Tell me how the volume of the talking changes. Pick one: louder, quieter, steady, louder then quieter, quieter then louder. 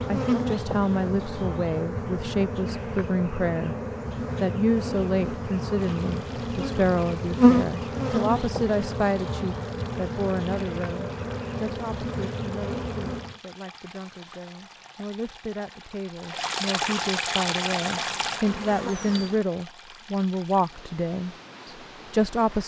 quieter then louder.